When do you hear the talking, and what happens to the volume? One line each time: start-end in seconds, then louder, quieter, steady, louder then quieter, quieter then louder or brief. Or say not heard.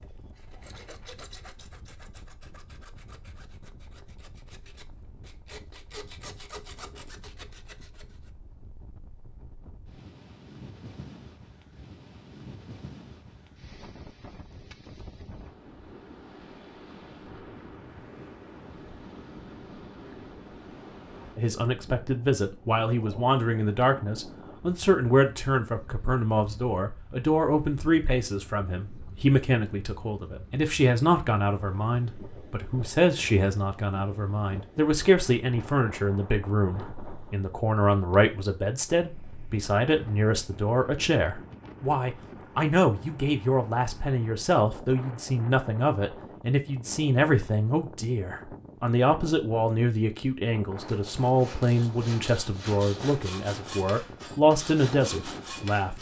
21.4-55.9 steady.